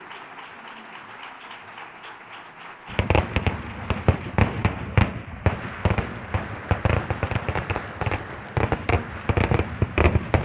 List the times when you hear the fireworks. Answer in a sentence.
You can hear the fireworks from 2.9 to 10.3 s.